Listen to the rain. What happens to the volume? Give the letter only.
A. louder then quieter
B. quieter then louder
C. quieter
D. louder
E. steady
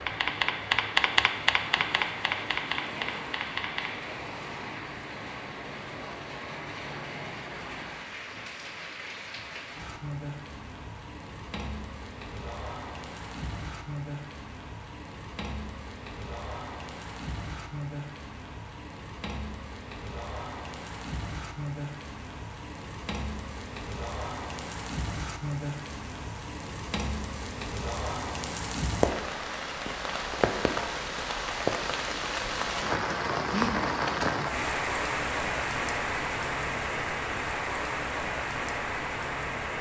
D.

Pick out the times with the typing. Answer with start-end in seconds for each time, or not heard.
0.0-3.9.